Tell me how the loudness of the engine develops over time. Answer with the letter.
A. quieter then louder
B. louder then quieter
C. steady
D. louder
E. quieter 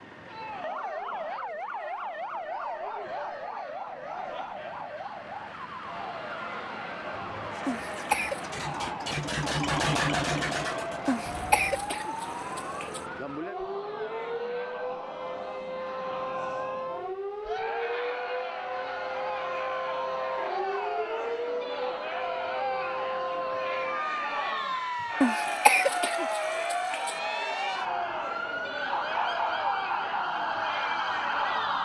B.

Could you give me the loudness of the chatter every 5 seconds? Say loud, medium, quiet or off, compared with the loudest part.
medium, medium, medium, loud, loud, loud, loud.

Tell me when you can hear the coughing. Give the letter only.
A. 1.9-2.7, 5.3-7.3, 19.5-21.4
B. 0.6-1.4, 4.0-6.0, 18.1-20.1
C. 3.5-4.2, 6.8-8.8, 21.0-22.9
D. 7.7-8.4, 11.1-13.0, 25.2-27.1
D.